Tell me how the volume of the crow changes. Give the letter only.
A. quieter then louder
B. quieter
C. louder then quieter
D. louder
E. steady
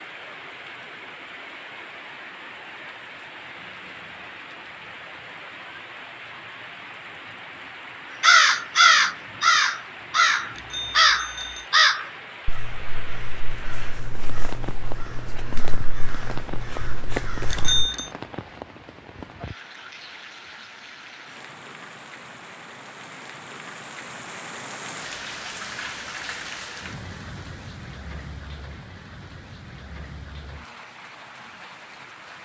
A.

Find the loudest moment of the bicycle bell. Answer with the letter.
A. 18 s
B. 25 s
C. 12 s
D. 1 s
A.